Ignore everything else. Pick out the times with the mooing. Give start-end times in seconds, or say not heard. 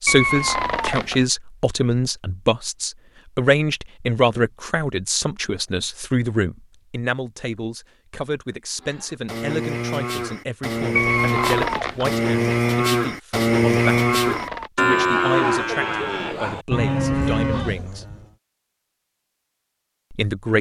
8.8-18.2.